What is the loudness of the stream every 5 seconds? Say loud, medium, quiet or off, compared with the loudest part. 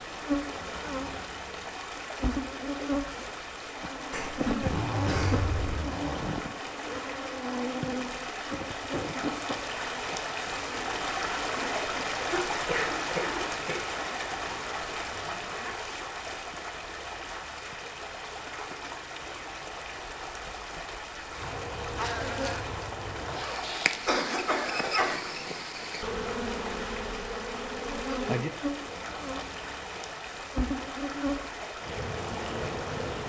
medium, medium, loud, medium, medium, medium, medium.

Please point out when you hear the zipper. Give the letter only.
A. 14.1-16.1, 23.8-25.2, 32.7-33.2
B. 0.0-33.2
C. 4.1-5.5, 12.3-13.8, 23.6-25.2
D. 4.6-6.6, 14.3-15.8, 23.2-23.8
D.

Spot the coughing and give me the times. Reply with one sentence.
You can hear the coughing from 4.1 to 5.5 s, from 12.3 to 13.8 s and from 23.6 to 25.2 s.